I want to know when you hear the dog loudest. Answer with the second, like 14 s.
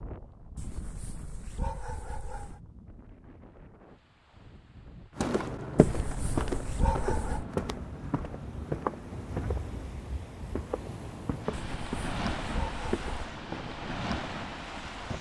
7 s.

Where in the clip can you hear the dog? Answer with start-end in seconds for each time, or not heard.
0.6-2.6, 5.8-7.5, 11.5-13.3.